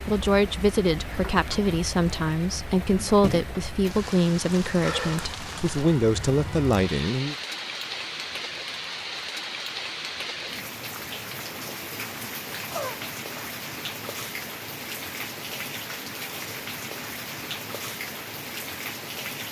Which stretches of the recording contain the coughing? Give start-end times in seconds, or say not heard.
12.7-13.6.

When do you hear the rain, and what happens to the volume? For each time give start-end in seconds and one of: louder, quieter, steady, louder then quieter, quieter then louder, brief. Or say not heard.
0.0-19.4 steady.